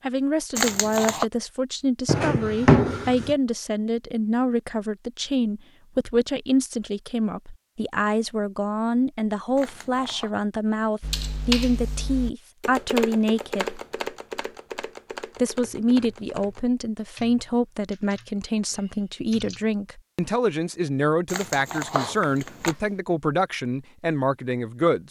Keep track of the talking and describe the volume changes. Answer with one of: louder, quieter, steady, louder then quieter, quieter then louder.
steady.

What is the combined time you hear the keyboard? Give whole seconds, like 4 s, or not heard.
9 s.